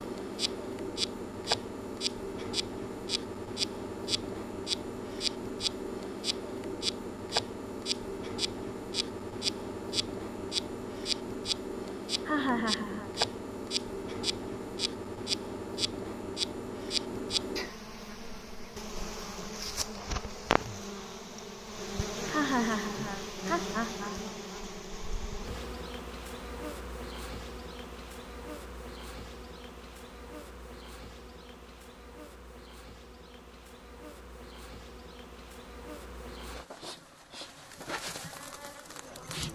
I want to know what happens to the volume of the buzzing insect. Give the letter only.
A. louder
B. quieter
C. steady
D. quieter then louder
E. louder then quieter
B.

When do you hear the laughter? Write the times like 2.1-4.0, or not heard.
12.2-13.1, 22.3-24.2.